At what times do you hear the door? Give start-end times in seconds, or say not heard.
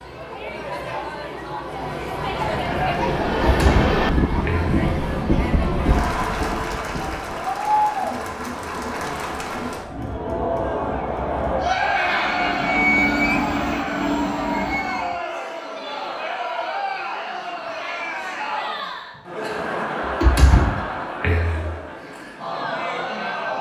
3.4-4.8, 20.2-21.6.